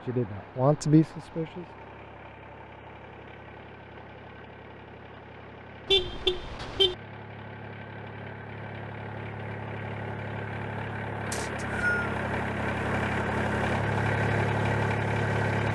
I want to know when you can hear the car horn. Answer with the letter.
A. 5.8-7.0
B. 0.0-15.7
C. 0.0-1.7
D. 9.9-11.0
A.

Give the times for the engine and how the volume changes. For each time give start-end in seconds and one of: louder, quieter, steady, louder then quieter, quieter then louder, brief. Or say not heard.
0.0-15.7 louder.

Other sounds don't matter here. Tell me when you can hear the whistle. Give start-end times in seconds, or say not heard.
11.3-12.2.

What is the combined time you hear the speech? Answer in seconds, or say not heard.
2 s.